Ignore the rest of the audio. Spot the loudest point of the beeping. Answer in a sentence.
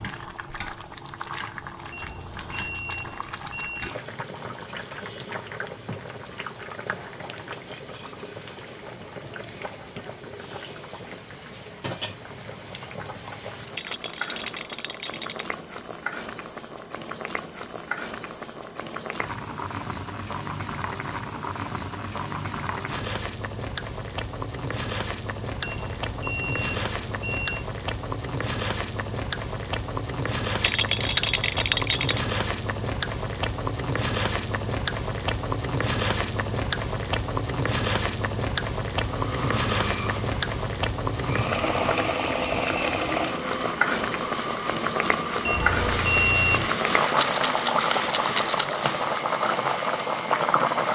The volume of the beeping peaks at 46 seconds.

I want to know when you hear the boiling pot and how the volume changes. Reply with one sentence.
You can hear the boiling pot from 0.0 to 50.9 s, getting louder.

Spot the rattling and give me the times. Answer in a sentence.
You can hear the rattling from 13.7 to 15.4 s, from 30.6 to 32.2 s and from 47.0 to 48.9 s.